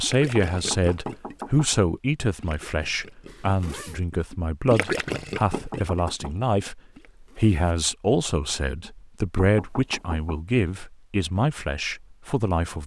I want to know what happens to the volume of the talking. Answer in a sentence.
The volume of the talking stays about the same.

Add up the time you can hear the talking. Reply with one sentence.
You can hear the talking for 13 seconds altogether.